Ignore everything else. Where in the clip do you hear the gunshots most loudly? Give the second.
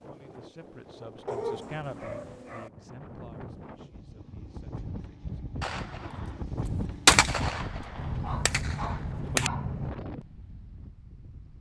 7 s.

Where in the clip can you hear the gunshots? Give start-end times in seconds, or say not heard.
5.6-9.5.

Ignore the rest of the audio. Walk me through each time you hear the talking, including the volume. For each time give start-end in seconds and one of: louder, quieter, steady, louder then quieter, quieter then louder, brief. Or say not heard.
0.0-5.3 louder then quieter.